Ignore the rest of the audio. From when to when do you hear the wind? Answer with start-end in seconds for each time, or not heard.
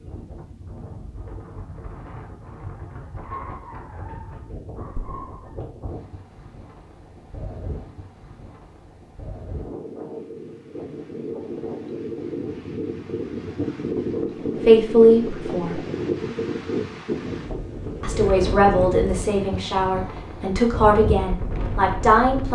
0.0-22.5.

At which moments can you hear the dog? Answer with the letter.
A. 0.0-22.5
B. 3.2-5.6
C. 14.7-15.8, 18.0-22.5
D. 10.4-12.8
B.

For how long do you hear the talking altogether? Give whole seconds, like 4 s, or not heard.
6 s.